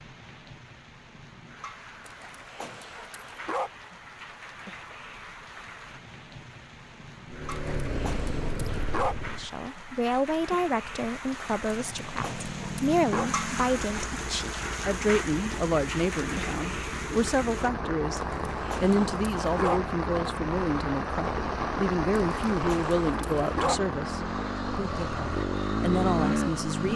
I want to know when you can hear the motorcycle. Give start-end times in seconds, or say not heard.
7.2-9.6, 12.2-26.9.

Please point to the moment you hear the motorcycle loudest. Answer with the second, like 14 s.
26 s.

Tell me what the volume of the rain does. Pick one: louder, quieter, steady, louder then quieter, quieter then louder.
louder.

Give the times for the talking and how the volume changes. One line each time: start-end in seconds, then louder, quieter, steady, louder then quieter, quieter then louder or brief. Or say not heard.
9.3-26.9 steady.